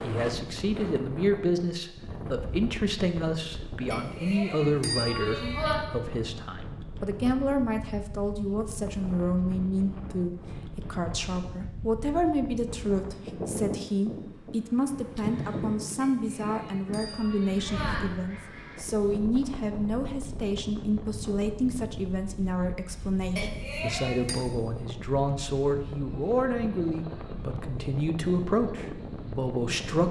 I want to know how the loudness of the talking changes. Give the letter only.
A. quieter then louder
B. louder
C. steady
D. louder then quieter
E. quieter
C.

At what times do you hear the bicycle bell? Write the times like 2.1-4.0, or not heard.
3.9-5.8, 16.0-18.0, 23.4-24.4.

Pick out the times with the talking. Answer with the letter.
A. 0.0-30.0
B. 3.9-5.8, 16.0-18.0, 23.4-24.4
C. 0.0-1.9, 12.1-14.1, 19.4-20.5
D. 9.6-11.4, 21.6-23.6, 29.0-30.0
A.